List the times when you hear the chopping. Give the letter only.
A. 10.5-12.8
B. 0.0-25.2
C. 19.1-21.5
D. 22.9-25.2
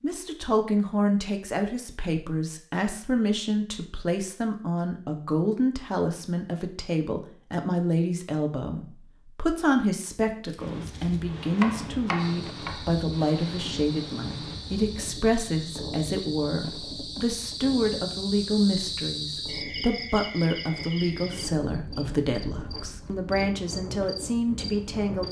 A.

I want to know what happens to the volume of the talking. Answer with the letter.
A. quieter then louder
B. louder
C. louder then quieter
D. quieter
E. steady
E.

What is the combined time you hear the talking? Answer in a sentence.
You can hear the talking for 25 seconds altogether.